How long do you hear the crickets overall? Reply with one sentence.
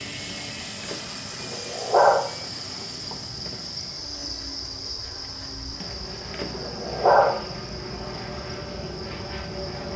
The crickets can be heard for 10 seconds in total.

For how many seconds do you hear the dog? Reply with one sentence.
The dog can be heard for 3 seconds in total.